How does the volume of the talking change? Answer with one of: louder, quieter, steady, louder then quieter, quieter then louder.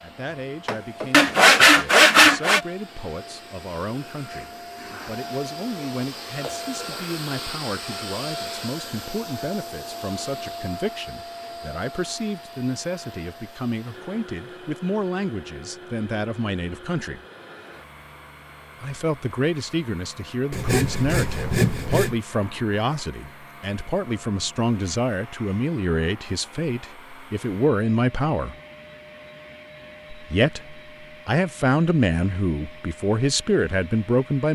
louder.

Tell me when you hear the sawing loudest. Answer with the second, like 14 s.
2 s.